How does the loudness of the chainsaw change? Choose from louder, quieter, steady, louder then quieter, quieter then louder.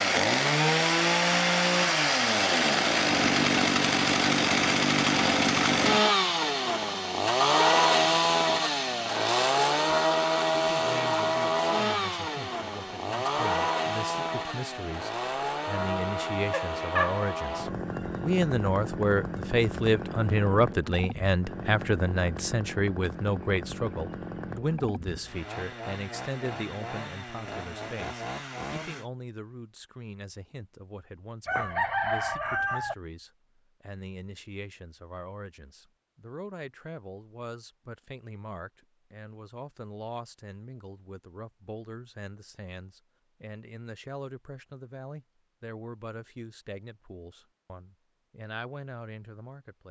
quieter.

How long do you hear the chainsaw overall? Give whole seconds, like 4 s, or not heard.
29 s.